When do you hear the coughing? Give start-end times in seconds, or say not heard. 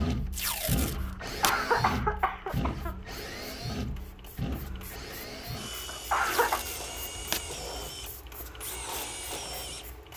0.8-3.0, 5.5-6.7.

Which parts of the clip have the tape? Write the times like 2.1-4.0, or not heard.
0.3-1.6, 6.2-7.5.